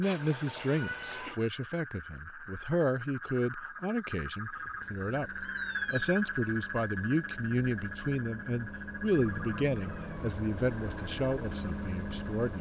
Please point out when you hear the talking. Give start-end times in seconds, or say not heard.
0.0-12.5.